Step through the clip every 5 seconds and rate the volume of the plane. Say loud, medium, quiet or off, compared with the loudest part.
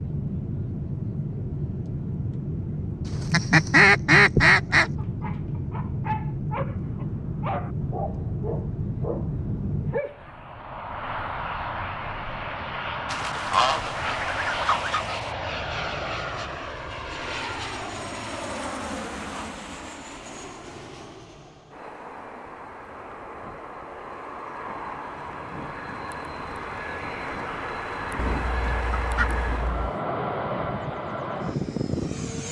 loud, loud, loud, loud, medium, loud, loud.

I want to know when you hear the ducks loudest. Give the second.
4 s.